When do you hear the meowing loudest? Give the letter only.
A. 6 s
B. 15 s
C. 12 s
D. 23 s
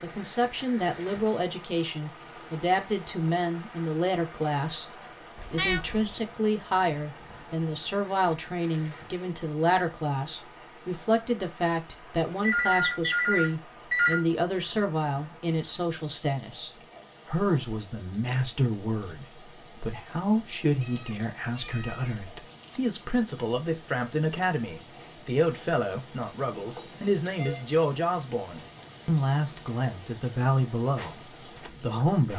A.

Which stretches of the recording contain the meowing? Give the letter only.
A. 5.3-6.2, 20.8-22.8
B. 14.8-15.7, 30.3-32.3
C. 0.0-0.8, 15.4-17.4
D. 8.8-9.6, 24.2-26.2
A.